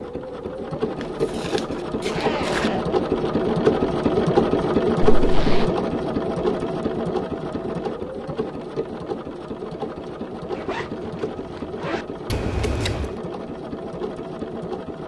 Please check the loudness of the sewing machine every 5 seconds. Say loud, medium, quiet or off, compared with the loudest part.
loud, loud, medium.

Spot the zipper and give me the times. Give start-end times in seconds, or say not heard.
2.1-2.9, 5.2-5.8, 10.5-12.1.